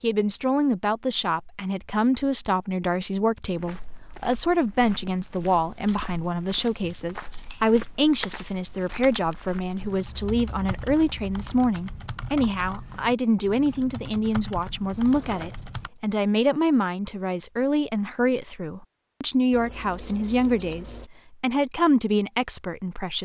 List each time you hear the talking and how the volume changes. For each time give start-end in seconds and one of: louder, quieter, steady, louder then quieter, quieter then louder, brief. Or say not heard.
0.0-23.1 steady.